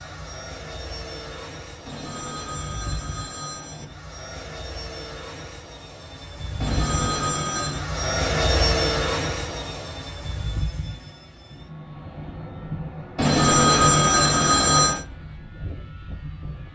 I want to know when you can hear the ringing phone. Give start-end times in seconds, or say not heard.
1.9-3.9, 6.6-7.8, 13.2-15.1.